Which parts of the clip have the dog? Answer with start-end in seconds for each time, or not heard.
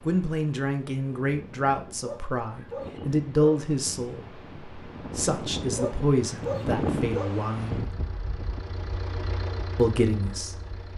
2.0-3.6, 5.8-7.4.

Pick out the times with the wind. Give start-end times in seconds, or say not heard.
0.0-10.9.